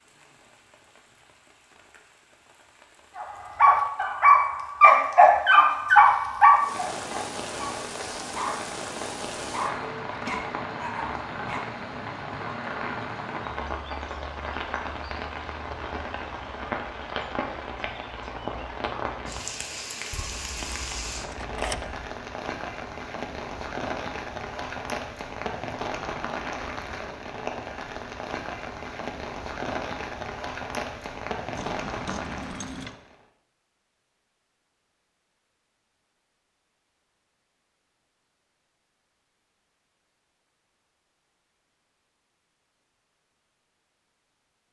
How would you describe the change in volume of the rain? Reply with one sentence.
The volume of the rain goes up.